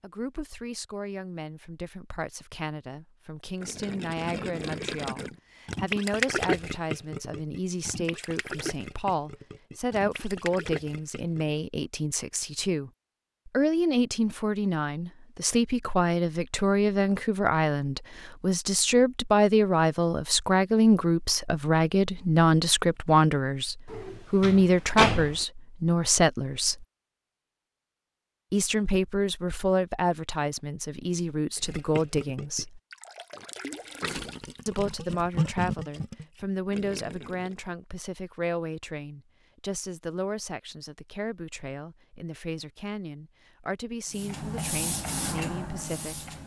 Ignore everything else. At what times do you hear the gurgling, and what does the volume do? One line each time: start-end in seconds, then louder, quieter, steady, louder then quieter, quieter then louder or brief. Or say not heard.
3.6-11.6 louder then quieter
31.6-37.7 louder then quieter.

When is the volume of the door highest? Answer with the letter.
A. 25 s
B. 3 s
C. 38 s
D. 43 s
A.